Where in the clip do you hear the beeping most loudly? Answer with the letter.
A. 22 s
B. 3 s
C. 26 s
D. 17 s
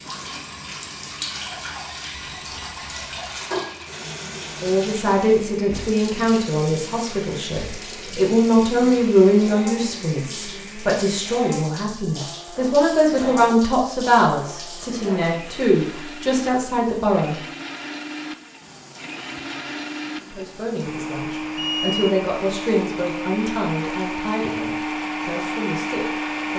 A.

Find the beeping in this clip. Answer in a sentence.
You can hear the beeping from 2.1 to 3.5 s and from 21.6 to 22.2 s.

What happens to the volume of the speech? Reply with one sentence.
The volume of the speech goes down.